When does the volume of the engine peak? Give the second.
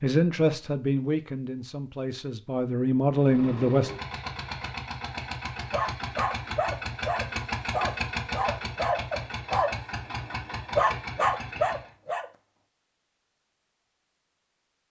8 s.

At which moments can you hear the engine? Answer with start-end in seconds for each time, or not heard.
3.1-11.9.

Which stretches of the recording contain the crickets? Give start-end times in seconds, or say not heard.
not heard.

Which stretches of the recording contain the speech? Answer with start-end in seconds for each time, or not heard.
0.0-3.9.